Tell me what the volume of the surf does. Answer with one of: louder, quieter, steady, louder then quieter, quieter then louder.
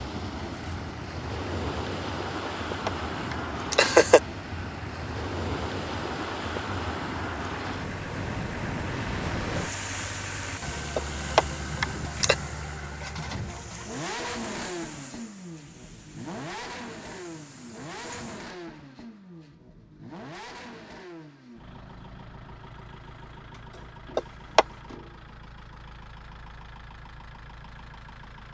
quieter.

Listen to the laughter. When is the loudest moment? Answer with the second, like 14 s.
4 s.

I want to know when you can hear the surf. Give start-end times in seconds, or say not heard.
0.0-18.5.